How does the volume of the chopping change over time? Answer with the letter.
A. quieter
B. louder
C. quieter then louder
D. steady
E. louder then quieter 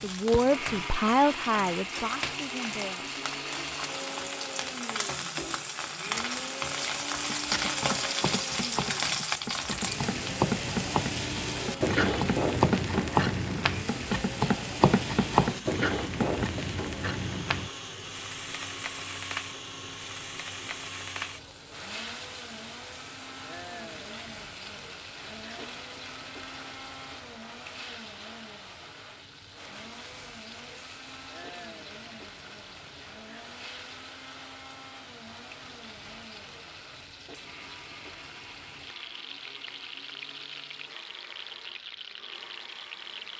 B.